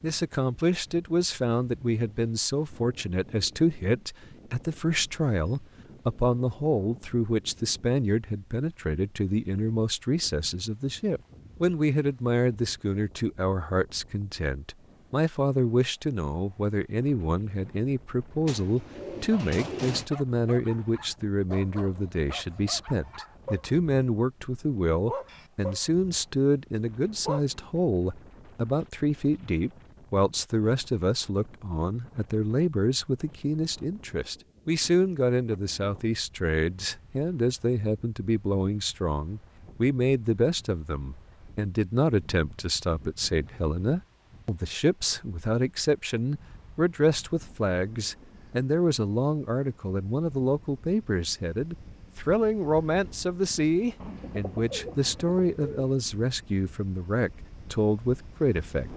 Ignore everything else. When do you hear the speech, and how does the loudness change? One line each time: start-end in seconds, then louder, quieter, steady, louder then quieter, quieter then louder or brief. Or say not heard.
0.0-58.9 steady.